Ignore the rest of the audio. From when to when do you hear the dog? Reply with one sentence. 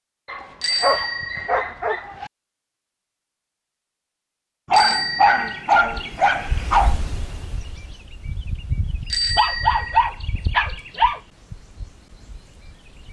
You can hear the dog from 0.2 to 2.3 s, from 4.7 to 7.0 s and from 9.3 to 11.2 s.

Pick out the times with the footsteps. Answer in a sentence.
The footsteps can't be heard in this clip.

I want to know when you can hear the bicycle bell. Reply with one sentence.
You can hear the bicycle bell from 0.6 to 1.6 s, from 4.7 to 5.6 s and from 9.1 to 10.1 s.